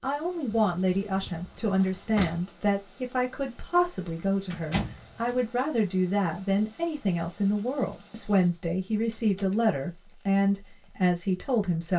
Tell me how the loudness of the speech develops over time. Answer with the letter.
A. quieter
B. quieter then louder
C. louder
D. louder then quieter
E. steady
E.